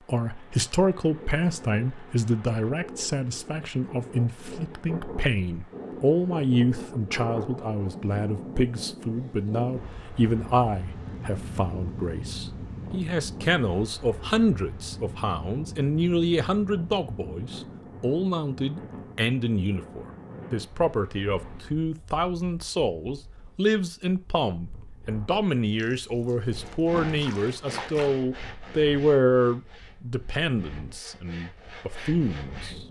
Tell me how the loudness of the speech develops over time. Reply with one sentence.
The loudness of the speech stays about the same.